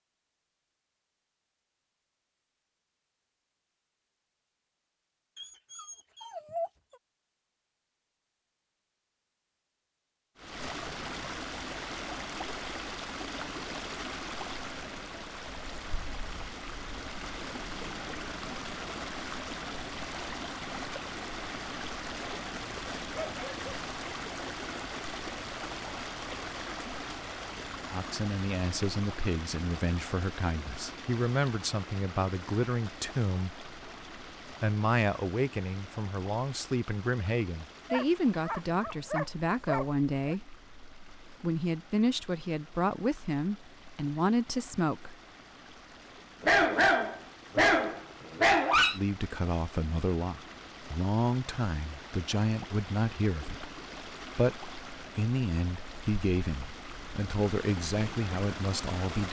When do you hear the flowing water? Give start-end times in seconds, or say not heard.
10.3-59.2.